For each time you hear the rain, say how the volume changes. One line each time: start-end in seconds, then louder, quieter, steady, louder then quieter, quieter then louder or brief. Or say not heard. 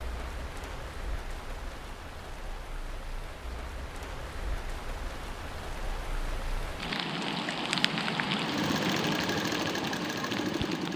0.0-10.9 louder.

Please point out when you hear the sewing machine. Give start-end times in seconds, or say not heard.
8.4-10.9.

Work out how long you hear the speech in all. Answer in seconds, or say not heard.
not heard.